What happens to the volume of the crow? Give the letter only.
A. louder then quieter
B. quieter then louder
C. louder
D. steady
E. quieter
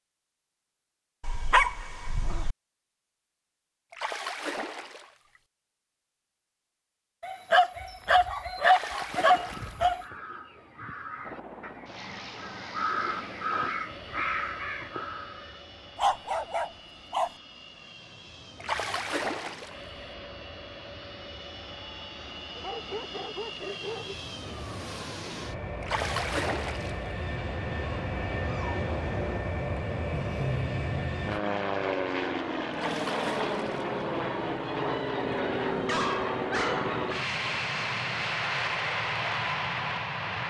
C.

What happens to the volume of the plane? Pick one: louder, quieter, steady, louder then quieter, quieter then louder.
louder.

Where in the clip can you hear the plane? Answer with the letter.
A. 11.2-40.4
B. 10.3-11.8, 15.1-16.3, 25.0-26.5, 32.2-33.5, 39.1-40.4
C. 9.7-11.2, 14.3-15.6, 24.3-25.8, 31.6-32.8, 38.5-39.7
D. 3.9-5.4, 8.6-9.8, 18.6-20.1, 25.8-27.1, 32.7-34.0
A.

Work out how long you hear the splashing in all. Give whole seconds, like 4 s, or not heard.
7 s.